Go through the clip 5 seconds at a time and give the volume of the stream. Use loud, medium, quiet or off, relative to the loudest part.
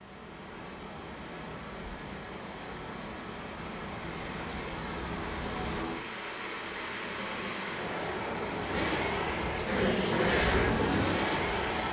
medium, loud, loud.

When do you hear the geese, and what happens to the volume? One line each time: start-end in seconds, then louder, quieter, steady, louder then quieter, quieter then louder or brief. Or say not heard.
not heard.